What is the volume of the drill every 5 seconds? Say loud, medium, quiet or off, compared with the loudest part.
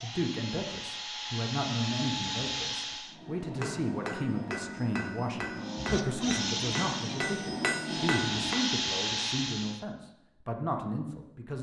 loud, loud, off.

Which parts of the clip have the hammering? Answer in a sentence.
The hammering can be heard from 3.1 to 8.9 s.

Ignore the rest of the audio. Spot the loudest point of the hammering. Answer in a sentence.
The volume of the hammering peaks at 8 seconds.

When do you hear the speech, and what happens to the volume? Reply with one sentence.
The speech can be heard from 0.0 to 11.5 s, at a steady volume.